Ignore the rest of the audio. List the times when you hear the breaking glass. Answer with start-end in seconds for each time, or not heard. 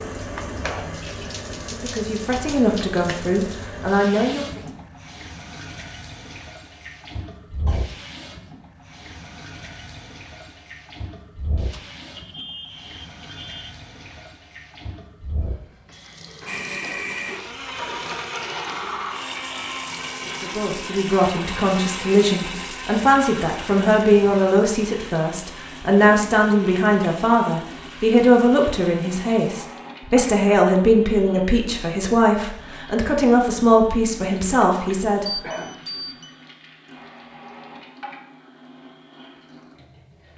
not heard.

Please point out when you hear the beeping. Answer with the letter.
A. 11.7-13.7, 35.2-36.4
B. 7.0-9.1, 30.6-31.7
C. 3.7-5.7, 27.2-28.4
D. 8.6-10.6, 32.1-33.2
A.